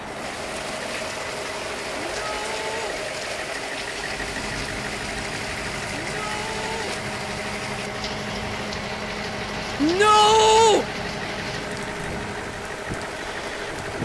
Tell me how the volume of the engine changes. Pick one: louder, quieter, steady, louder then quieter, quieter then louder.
steady.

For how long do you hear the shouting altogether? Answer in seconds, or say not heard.
3 s.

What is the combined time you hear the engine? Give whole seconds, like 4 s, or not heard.
14 s.